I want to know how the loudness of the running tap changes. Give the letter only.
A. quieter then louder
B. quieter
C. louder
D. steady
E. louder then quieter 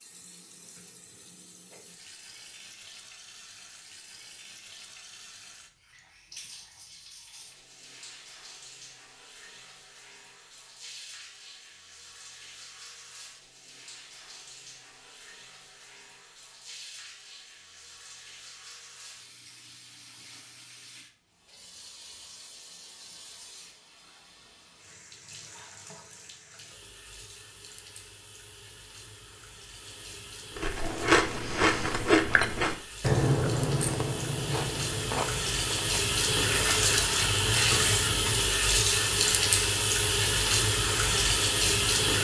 C.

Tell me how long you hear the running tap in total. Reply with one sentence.
You can hear the running tap for 42 seconds altogether.